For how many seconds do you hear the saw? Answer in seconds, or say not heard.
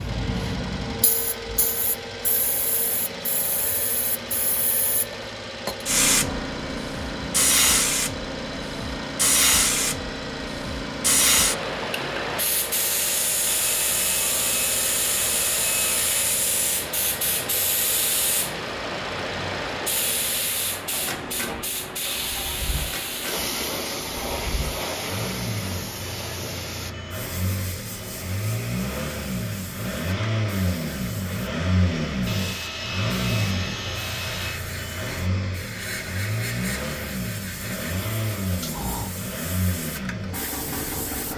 5 s.